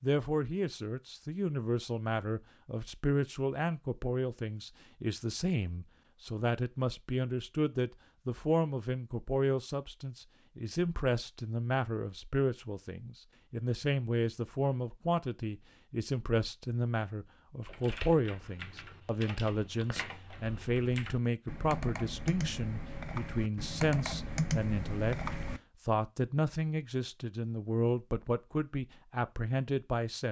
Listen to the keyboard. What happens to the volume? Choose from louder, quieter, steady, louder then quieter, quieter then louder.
louder.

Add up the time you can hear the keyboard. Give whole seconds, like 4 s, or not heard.
8 s.